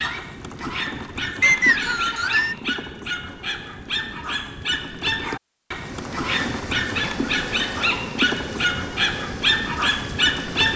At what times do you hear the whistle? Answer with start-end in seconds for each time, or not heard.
1.4-2.5.